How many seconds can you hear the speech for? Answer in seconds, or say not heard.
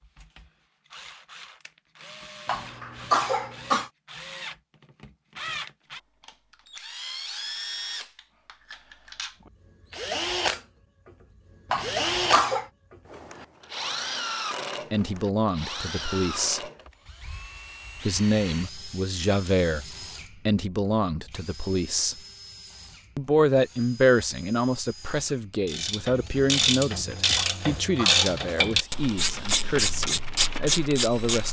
14 s.